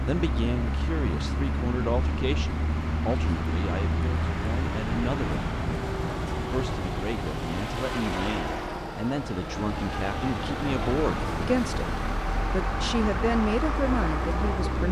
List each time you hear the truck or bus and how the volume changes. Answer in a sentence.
The truck or bus can be heard from 0.0 to 14.8 s, at a steady volume.